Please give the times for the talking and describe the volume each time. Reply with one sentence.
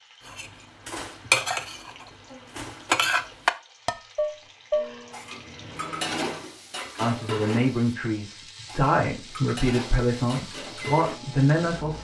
You can hear the talking from 7.0 to 11.9 s, at a steady volume.